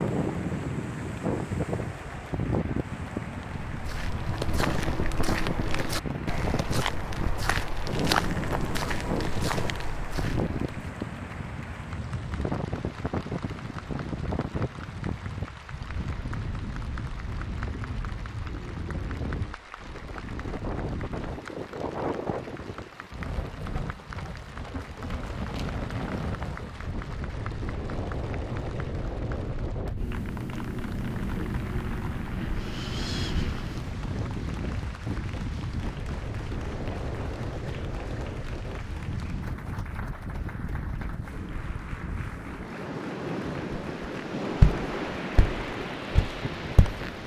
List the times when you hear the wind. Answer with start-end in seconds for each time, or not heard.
0.0-47.2.